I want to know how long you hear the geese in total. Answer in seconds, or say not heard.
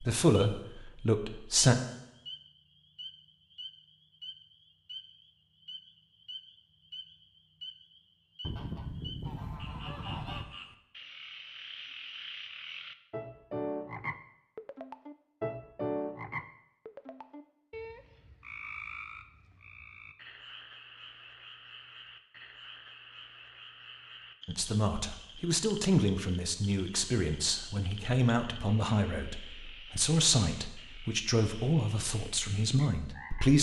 2 s.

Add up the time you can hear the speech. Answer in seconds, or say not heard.
11 s.